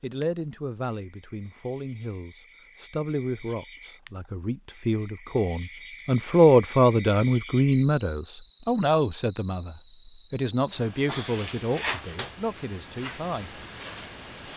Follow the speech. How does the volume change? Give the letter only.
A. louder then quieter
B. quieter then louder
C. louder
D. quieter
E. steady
A.